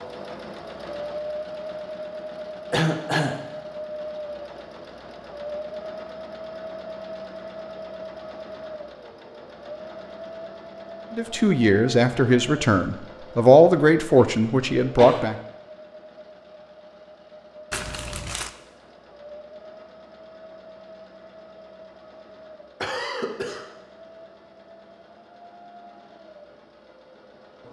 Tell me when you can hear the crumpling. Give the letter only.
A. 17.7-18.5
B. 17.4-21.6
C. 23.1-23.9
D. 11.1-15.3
A.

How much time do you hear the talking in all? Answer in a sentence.
The talking can be heard for 4 seconds in total.